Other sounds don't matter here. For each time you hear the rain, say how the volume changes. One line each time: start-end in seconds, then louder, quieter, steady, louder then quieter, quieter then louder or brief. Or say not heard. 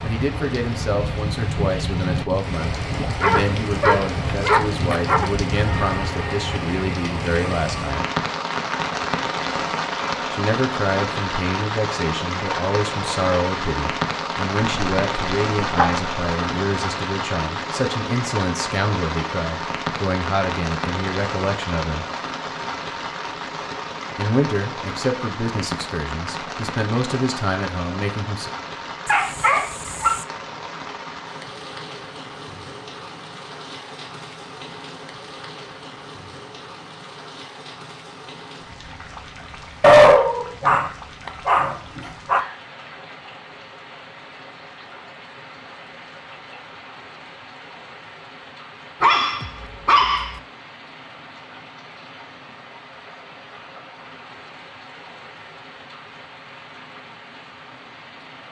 0.0-58.4 quieter.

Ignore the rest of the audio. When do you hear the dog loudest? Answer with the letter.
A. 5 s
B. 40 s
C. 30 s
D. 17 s
B.